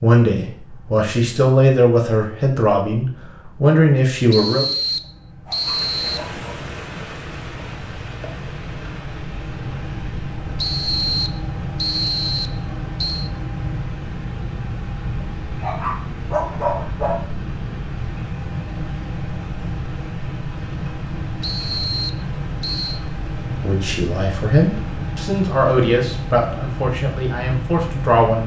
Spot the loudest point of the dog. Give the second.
17 s.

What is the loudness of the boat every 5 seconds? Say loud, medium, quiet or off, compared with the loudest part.
quiet, medium, loud, loud, loud, loud.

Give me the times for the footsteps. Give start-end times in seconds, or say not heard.
not heard.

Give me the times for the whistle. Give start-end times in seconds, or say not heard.
4.3-6.2, 10.6-13.3, 21.4-23.1.